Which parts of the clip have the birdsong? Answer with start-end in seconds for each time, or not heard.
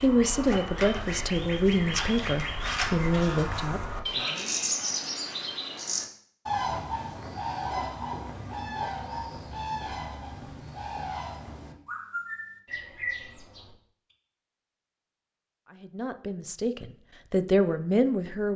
0.0-13.8.